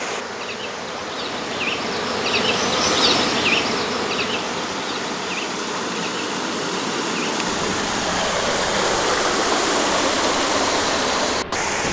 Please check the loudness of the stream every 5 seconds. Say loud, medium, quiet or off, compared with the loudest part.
medium, loud, loud.